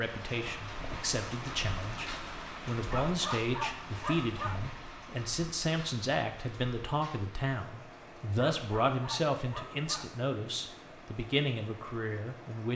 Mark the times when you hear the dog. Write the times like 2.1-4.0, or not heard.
2.9-4.6, 8.3-10.2.